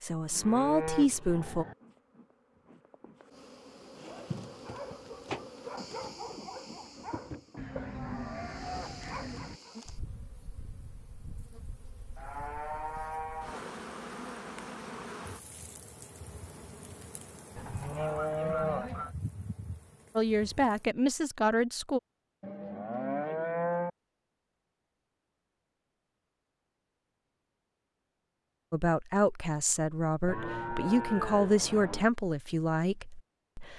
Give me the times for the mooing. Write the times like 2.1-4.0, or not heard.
0.3-1.8, 7.5-9.6, 12.2-13.7, 17.6-19.1, 22.4-23.9, 30.2-32.0.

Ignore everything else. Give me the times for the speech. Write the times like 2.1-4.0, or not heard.
0.0-1.6, 20.1-22.0, 28.7-33.7.